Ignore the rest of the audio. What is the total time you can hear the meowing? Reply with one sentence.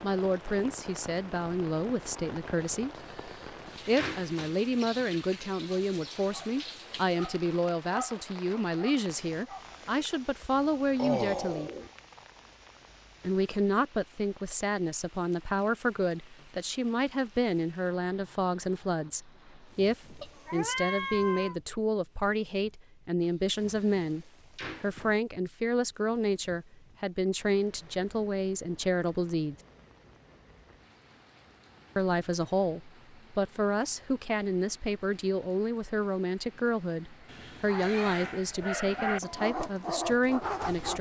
You can hear the meowing for 4 seconds altogether.